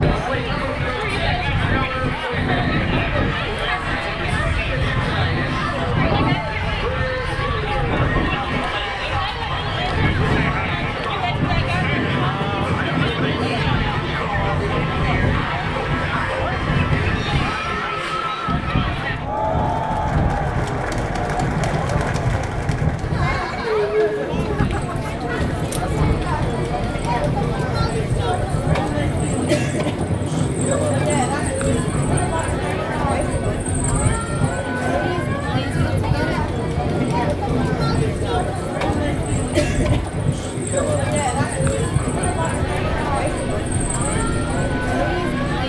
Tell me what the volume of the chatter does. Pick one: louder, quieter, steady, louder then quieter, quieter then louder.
steady.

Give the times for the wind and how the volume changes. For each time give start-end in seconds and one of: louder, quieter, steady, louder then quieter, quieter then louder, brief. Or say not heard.
0.0-45.6 steady.